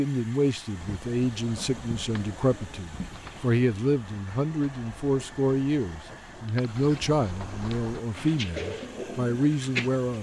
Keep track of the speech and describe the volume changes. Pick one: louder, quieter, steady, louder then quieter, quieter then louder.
steady.